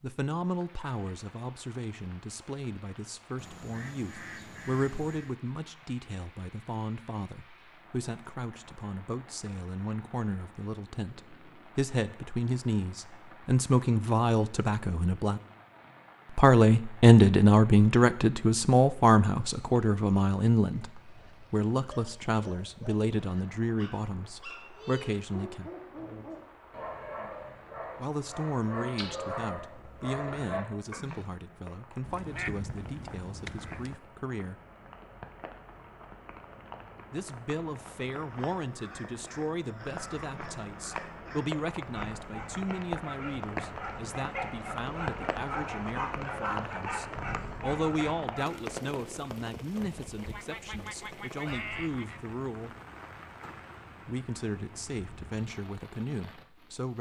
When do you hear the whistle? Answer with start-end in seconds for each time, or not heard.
not heard.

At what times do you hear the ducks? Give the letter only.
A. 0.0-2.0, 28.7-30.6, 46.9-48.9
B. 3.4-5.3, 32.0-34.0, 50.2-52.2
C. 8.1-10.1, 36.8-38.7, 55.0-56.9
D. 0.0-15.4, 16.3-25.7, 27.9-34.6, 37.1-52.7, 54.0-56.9
B.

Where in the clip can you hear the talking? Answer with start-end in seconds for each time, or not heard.
0.0-15.4, 16.3-25.7, 27.9-34.6, 37.1-52.7, 54.0-56.9.